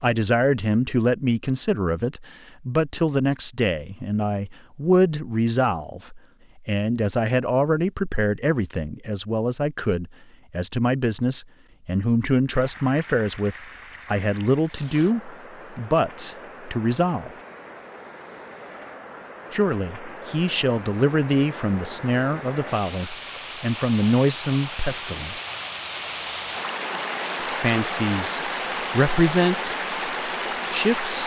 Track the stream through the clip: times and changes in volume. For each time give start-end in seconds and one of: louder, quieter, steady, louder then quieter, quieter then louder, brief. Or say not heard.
12.5-31.2 louder.